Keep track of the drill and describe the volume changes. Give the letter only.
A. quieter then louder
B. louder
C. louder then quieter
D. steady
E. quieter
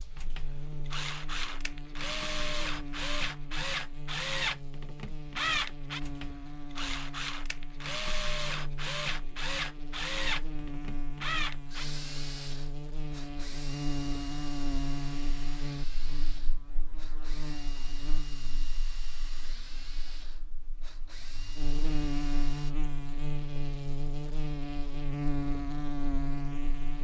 E.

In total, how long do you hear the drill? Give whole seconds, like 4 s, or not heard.
23 s.